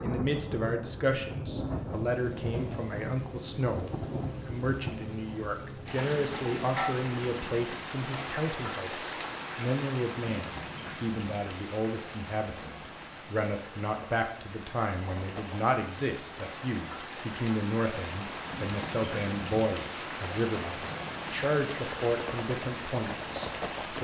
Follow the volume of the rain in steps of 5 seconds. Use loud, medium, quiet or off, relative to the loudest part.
loud, loud, medium, loud, loud.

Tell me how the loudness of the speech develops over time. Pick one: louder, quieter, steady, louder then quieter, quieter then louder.
steady.